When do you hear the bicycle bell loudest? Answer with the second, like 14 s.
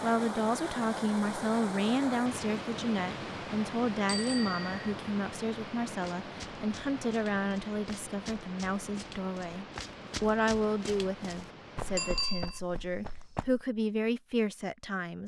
12 s.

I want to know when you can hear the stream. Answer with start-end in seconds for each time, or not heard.
0.0-12.3.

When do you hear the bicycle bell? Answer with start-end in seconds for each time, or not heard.
4.0-4.9, 11.9-12.6.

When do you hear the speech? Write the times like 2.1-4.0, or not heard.
0.0-15.2.